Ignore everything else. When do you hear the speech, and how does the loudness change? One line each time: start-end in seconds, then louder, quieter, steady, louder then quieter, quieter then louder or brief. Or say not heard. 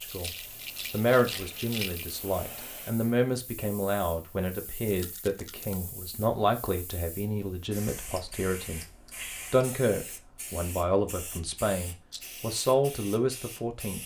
0.0-14.0 steady.